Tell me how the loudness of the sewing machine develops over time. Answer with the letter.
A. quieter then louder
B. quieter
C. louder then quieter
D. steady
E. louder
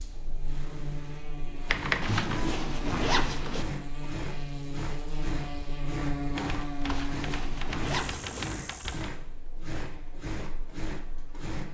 D.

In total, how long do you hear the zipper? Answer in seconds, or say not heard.
3 s.